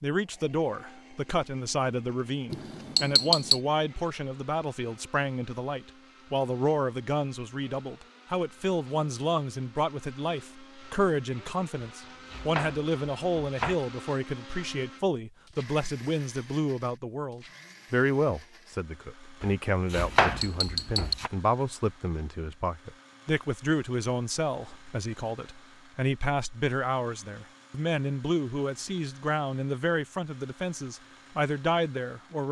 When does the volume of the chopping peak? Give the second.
20 s.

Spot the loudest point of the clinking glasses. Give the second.
3 s.